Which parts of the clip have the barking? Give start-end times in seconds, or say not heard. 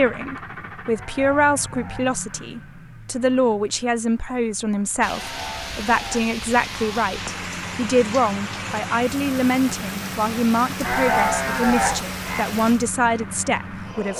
not heard.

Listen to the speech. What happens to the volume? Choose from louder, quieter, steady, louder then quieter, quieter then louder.
steady.